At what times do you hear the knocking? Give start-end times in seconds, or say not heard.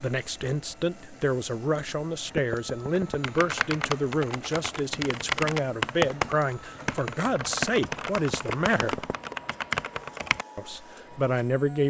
2.4-3.2, 8.3-9.2.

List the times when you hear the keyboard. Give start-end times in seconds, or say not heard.
3.2-10.4.